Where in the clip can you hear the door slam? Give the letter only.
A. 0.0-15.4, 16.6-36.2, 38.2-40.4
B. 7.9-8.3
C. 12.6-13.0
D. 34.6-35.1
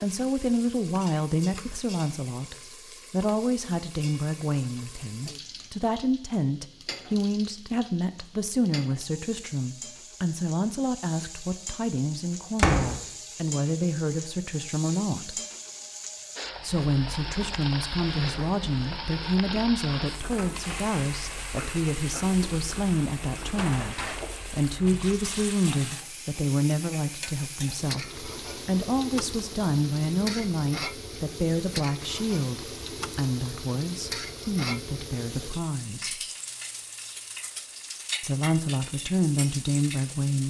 C.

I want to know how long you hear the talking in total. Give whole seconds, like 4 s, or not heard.
37 s.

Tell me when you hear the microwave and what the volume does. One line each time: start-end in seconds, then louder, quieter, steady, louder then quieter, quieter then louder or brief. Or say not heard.
not heard.